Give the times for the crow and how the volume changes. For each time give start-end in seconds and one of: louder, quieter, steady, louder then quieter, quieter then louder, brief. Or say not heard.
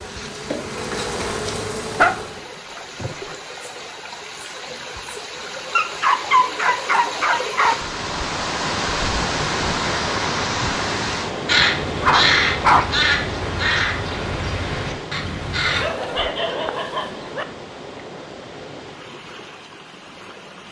11.4-15.9 quieter.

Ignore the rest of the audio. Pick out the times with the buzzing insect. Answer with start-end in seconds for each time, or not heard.
0.0-2.5.